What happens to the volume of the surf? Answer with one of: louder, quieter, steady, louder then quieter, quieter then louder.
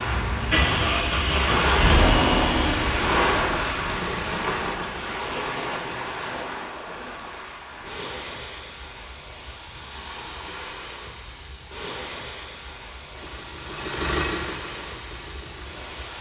quieter.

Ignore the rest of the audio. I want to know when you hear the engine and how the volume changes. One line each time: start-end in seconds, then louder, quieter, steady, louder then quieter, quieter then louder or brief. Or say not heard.
0.0-6.5 quieter
13.2-16.1 brief.